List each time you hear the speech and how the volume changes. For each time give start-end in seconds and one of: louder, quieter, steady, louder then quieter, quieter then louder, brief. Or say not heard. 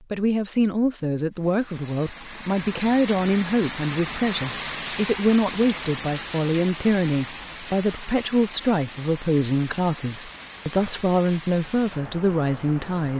0.1-13.1 steady.